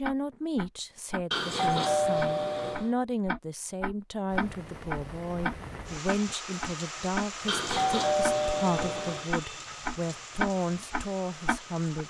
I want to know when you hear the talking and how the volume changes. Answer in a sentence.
The talking can be heard from 0.0 to 12.0 s, at a steady volume.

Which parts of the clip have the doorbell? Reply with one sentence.
You can hear the doorbell from 1.3 to 2.9 s and from 7.5 to 9.3 s.